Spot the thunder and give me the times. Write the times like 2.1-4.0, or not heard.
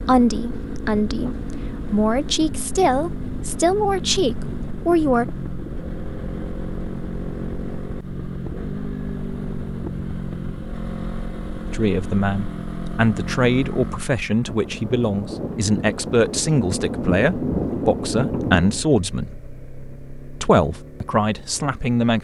14.4-18.9.